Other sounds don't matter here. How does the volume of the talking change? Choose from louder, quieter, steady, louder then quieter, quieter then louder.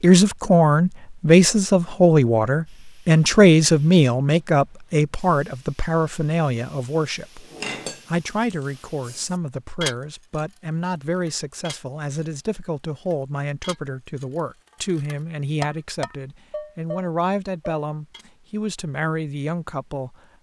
quieter.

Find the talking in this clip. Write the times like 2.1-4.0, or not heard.
0.0-20.1.